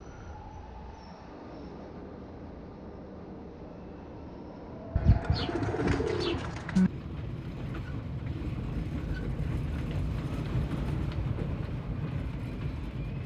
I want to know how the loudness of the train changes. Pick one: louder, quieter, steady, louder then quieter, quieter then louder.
louder.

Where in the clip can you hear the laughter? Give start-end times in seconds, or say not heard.
not heard.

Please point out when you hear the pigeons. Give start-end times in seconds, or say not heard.
5.0-6.9.